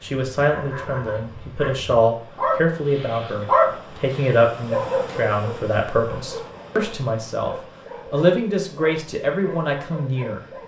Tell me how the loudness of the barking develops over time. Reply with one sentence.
The loudness of the barking goes up, then down.